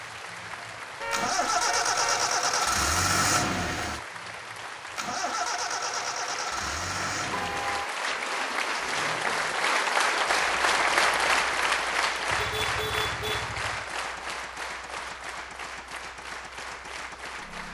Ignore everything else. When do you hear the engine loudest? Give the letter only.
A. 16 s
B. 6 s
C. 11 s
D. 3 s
D.